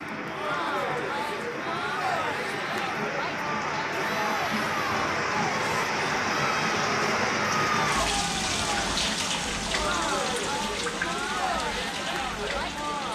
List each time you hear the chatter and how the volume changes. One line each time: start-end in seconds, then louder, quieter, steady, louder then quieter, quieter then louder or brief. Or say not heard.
0.1-13.1 steady.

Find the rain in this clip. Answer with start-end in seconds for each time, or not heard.
0.0-13.1.